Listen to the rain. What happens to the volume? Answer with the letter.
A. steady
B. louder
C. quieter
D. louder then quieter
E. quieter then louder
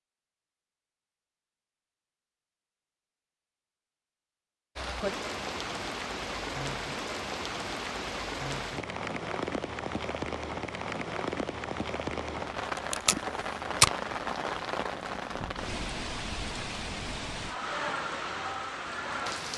A.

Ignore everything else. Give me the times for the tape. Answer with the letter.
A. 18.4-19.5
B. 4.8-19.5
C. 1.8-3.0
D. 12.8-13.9
D.